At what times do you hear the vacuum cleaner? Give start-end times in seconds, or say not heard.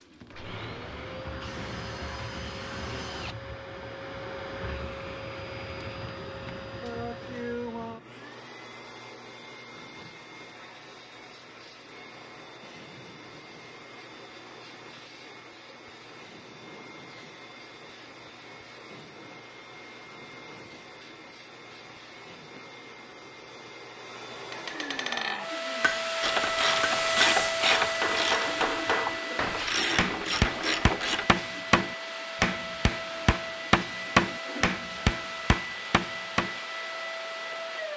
0.0-37.9.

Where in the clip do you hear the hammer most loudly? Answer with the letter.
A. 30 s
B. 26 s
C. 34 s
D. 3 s
C.